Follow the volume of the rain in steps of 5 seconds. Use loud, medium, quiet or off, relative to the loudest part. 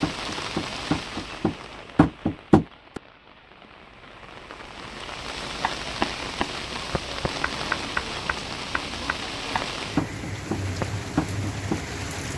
medium, loud, loud.